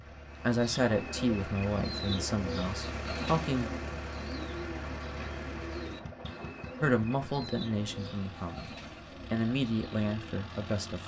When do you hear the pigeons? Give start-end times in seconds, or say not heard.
0.2-11.0.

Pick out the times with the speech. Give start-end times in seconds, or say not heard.
0.0-3.7, 6.8-8.7, 9.3-11.0.